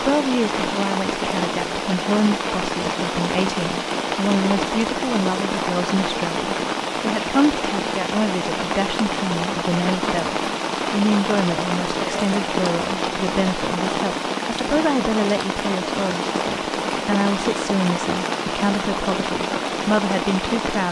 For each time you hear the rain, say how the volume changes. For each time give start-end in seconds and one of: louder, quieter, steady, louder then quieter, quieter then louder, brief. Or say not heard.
0.0-20.8 steady.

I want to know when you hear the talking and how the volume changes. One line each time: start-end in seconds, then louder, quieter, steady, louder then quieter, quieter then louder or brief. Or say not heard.
0.0-20.8 steady.